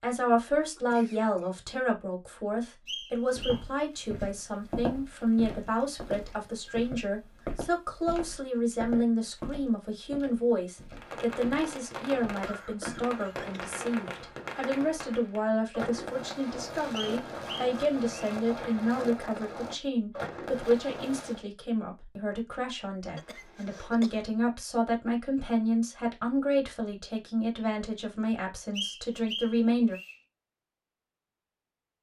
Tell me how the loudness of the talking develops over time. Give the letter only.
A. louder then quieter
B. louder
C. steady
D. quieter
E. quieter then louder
C.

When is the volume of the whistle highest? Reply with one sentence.
The volume of the whistle peaks at 29 seconds.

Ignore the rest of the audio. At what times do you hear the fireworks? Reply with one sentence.
You can hear the fireworks from 10.9 to 21.4 s.